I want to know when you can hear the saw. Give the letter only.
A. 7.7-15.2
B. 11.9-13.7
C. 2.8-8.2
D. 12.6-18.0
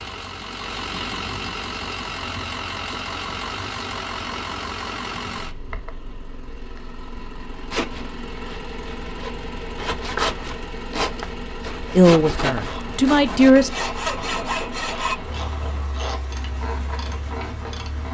A.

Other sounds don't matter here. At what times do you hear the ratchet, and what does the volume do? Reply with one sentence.
The ratchet can be heard from 12.6 to 18.0 s, at a steady volume.